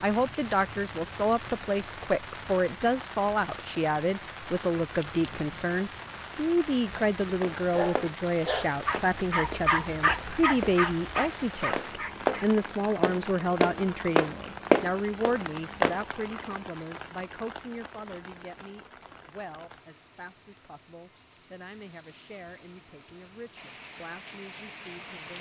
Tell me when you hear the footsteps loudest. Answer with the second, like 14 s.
15 s.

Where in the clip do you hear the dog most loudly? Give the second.
10 s.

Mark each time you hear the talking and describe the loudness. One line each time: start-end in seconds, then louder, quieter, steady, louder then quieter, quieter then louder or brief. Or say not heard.
0.0-25.3 quieter.